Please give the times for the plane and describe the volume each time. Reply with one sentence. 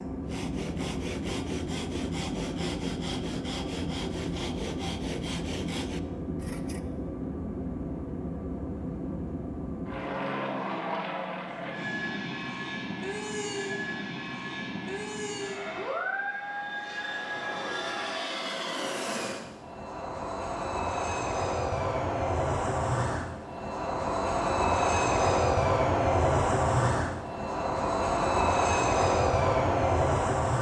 You can hear the plane from 0.0 to 30.5 s, getting louder.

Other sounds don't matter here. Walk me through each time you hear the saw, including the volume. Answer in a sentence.
You can hear the saw from 0.2 to 6.8 s, at a steady volume.